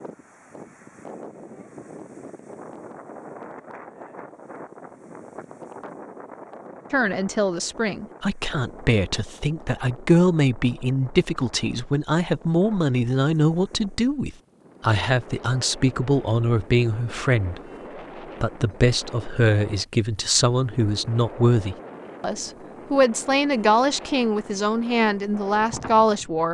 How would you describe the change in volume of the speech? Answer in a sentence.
The volume of the speech stays about the same.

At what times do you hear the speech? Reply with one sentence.
The speech can be heard from 6.9 to 17.6 s and from 18.4 to 26.5 s.